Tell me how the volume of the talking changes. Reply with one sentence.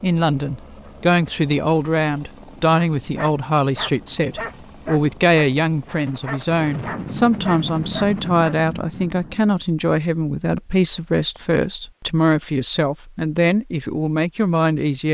The volume of the talking stays about the same.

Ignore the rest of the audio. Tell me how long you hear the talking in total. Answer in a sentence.
The talking can be heard for 15 seconds in total.